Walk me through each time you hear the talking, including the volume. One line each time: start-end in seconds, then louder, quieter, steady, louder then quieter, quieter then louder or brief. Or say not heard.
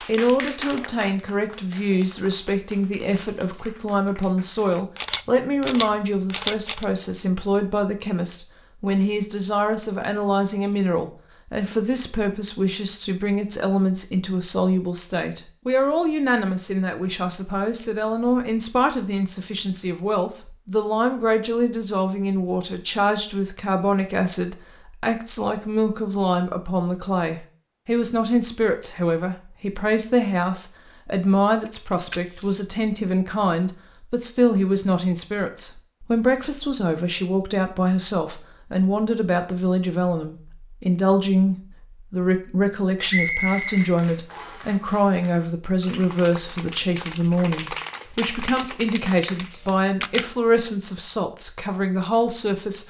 0.1-52.8 steady.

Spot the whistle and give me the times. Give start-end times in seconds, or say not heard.
43.0-44.7.